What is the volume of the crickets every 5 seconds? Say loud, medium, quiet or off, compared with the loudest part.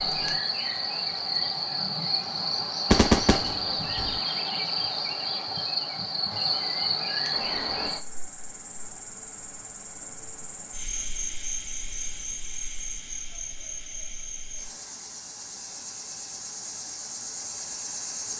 loud, loud, medium, medium.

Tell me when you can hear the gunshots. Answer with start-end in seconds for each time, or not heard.
2.9-4.2.